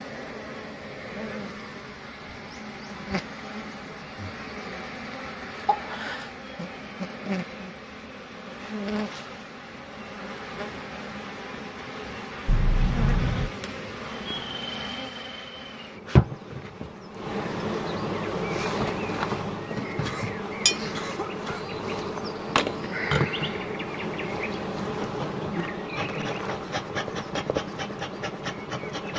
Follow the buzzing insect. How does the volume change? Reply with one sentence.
The volume of the buzzing insect goes up.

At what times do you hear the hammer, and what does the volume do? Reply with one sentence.
The hammer can't be heard in this clip.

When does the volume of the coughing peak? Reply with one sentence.
The loudest moment of the coughing is at 13 seconds.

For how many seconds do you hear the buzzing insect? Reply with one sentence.
The buzzing insect can be heard for 29 seconds in total.